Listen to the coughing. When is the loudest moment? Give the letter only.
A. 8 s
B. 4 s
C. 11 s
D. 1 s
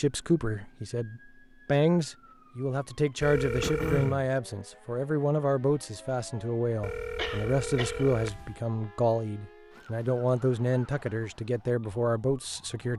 B.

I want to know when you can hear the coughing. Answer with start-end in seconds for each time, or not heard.
3.6-4.2, 7.2-8.1.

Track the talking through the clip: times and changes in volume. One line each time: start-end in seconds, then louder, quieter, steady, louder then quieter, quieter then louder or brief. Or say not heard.
0.0-12.9 steady.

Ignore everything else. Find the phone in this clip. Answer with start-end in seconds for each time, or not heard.
3.2-4.2, 6.8-8.6.